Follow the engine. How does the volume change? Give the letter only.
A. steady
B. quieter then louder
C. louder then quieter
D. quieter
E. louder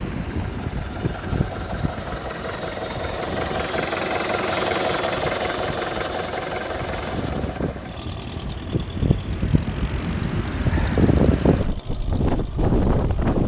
C.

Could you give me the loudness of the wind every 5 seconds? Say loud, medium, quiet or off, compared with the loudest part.
medium, medium, loud.